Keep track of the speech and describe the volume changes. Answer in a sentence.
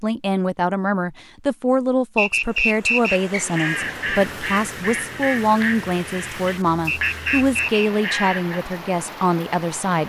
The loudness of the speech stays about the same.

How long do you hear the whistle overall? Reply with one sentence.
The whistle can be heard for 2 seconds in total.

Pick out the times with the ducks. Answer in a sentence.
The ducks can be heard from 3.1 to 8.7 s.